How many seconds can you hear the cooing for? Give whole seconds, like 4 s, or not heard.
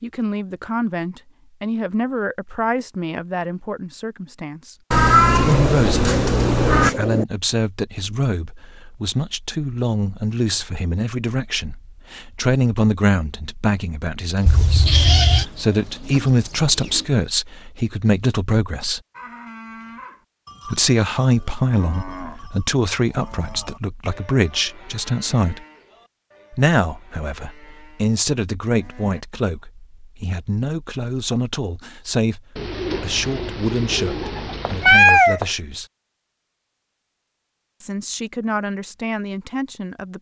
7 s.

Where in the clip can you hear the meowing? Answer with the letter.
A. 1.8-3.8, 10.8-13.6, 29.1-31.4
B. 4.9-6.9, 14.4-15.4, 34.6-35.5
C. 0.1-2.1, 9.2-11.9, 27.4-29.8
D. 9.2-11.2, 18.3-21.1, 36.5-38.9
B.